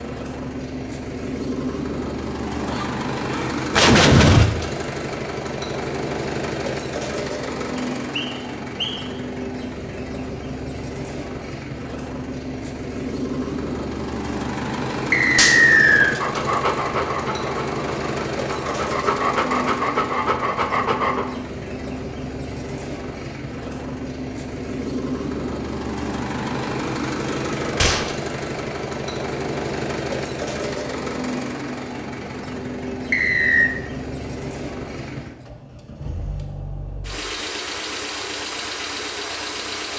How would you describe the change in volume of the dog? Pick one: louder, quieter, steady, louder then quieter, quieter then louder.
quieter then louder.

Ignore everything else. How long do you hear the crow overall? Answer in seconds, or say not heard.
not heard.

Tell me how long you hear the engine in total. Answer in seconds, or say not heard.
40 s.